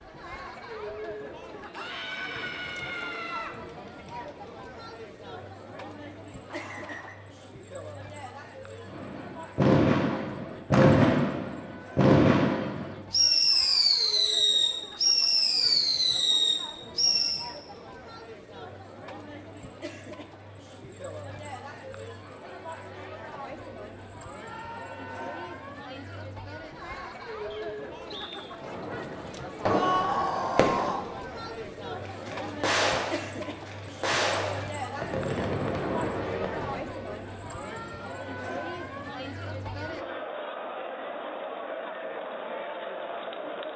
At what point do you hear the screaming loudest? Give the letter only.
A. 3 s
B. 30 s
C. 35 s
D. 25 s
B.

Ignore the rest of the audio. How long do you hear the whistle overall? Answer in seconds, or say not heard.
2 s.